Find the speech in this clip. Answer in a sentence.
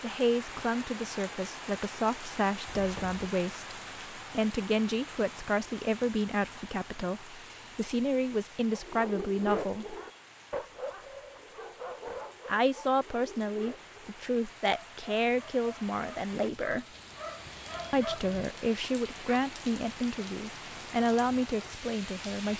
You can hear the speech from 0.0 to 9.9 s, from 12.4 to 16.9 s and from 17.9 to 22.5 s.